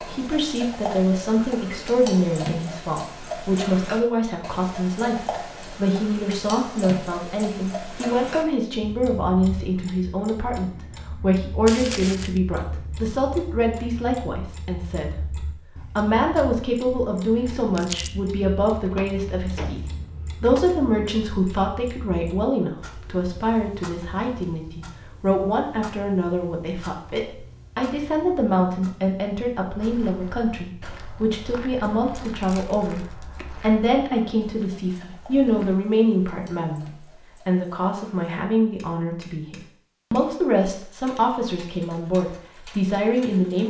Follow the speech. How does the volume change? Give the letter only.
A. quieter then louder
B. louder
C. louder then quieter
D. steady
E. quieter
D.